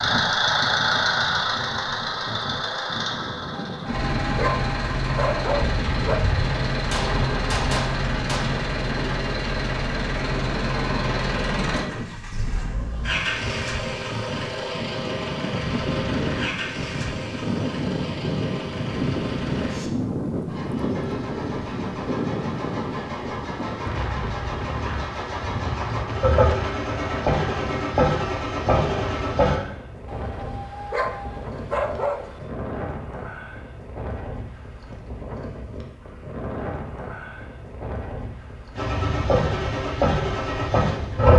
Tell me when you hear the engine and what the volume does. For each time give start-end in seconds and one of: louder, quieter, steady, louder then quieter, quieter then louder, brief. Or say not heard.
0.0-29.6 quieter then louder
38.8-41.3 brief.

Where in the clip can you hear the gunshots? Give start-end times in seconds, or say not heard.
6.8-8.5.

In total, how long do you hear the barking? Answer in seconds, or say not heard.
5 s.